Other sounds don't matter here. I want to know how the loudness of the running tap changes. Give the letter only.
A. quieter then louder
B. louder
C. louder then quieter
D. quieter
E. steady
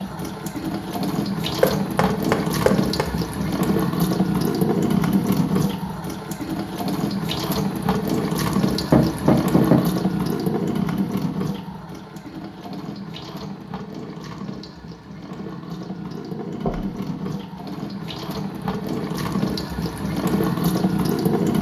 A.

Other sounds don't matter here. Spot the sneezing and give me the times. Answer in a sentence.
You can't hear the sneezing here.